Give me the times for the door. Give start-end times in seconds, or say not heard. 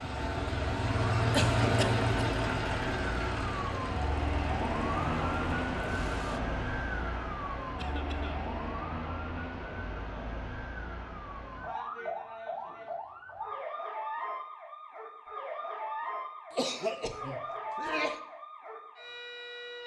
not heard.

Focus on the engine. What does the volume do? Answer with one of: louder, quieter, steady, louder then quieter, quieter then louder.
quieter.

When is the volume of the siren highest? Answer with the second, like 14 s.
5 s.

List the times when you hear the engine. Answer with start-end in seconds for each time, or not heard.
0.0-6.4.